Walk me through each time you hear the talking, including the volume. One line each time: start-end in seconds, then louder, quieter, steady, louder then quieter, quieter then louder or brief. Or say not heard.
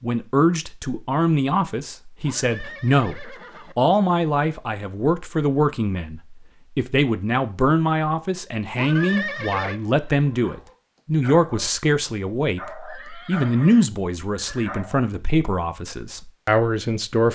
0.0-17.3 steady.